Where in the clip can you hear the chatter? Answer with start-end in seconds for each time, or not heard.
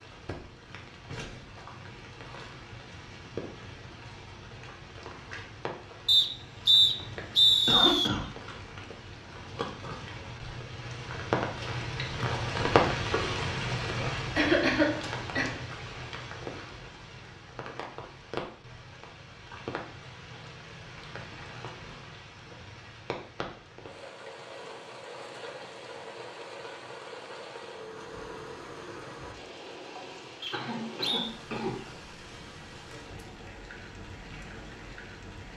not heard.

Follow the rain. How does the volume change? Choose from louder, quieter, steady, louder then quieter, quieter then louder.
louder then quieter.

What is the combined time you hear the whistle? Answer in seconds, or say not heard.
4 s.